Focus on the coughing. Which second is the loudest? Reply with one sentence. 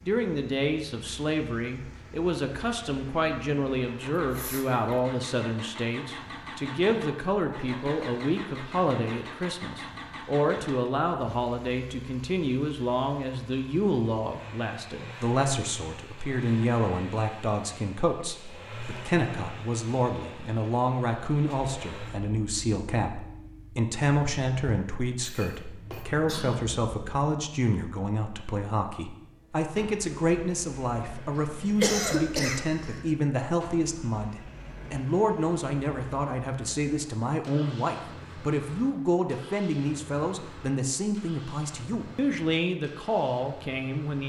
The loudest moment of the coughing is at 32 seconds.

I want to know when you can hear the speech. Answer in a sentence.
You can hear the speech from 0.1 to 44.2 s.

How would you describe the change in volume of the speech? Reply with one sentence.
The volume of the speech stays about the same.